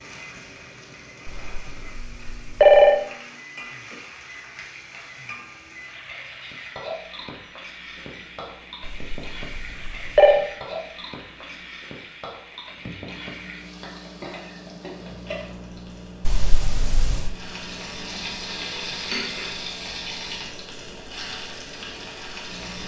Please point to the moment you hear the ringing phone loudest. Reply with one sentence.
The volume of the ringing phone peaks at 3 seconds.